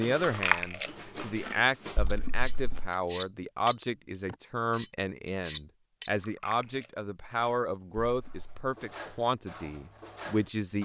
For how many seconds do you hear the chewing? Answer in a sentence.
The chewing can be heard for 5 seconds in total.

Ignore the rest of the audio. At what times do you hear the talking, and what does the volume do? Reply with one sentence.
The talking can be heard from 0.0 to 10.7 s, at a steady volume.